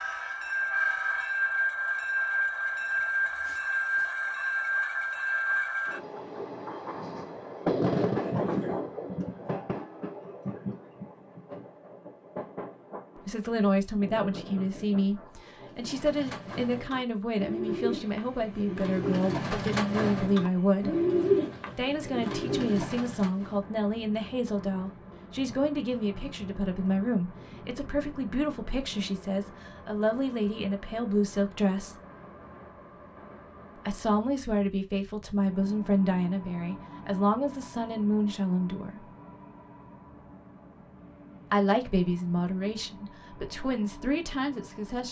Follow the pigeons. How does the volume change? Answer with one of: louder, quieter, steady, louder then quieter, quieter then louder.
louder then quieter.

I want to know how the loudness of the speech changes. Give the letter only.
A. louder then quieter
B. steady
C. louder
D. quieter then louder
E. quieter
B.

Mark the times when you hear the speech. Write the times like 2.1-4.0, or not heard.
13.2-20.9, 21.8-31.9, 33.8-39.1, 41.5-45.0.